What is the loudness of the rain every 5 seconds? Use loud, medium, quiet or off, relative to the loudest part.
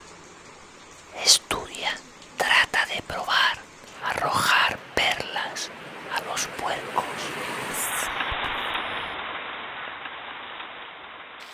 quiet, loud, medium.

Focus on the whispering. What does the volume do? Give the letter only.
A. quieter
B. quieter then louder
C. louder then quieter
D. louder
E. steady
A.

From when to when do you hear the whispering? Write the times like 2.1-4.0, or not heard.
1.1-9.2.